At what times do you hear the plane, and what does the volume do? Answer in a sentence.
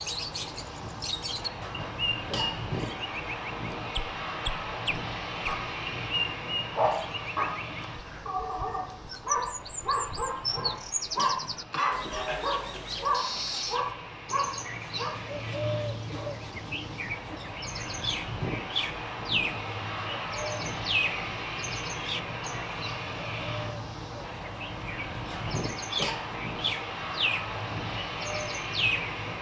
The plane can be heard from 0.0 to 29.3 s, getting quieter then louder.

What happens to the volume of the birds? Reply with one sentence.
The volume of the birds stays about the same.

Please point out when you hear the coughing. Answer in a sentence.
The coughing can be heard from 1.6 to 2.6 s, from 10.4 to 12.4 s and from 25.3 to 26.2 s.